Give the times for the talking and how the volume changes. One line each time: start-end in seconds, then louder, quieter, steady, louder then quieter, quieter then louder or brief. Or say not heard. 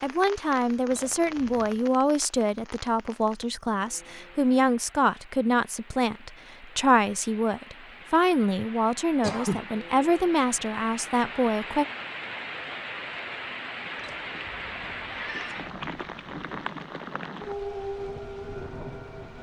0.0-11.8 steady.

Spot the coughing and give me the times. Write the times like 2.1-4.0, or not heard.
9.2-9.7.